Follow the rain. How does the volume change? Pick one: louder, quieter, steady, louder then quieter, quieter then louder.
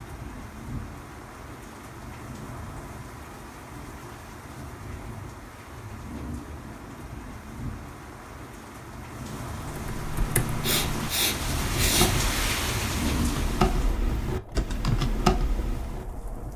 louder.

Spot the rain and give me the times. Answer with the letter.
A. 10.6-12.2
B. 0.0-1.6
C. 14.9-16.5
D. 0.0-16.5
D.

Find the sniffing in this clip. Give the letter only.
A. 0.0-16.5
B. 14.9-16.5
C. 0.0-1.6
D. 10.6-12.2
D.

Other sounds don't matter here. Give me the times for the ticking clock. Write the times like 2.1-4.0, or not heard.
not heard.